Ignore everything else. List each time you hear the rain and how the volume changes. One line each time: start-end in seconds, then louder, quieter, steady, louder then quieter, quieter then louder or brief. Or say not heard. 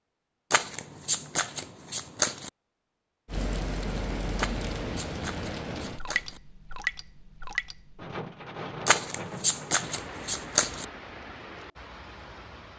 3.2-12.7 quieter.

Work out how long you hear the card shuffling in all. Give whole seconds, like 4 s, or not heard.
6 s.